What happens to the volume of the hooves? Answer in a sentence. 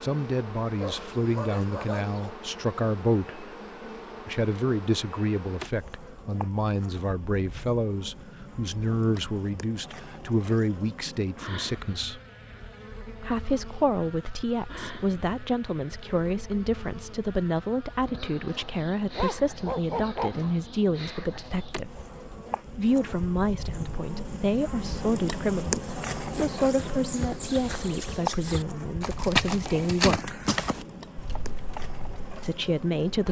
The loudness of the hooves goes up, then down.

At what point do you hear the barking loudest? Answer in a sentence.
The volume of the barking peaks at 20 seconds.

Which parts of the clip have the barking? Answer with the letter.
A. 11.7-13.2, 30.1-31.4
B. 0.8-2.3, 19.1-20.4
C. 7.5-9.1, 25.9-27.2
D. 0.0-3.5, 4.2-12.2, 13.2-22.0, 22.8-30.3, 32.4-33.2
B.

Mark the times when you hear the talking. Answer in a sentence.
The talking can be heard from 0.0 to 3.5 s, from 4.2 to 12.2 s, from 13.2 to 22.0 s, from 22.8 to 30.3 s and from 32.4 to 33.2 s.